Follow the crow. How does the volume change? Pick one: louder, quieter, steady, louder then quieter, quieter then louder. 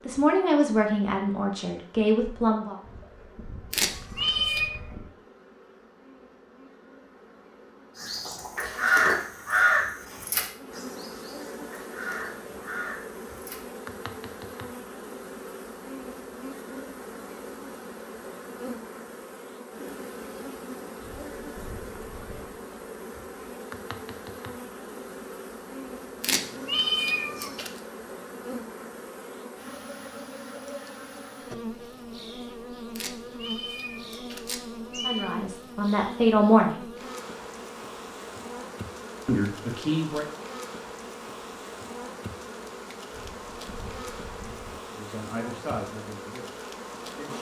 quieter.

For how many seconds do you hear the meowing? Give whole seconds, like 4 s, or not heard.
5 s.